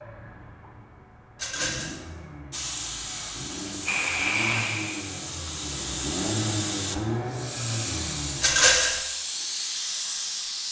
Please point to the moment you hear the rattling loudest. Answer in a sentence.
The volume of the rattling peaks at 9 seconds.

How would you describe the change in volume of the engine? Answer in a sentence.
The volume of the engine goes up.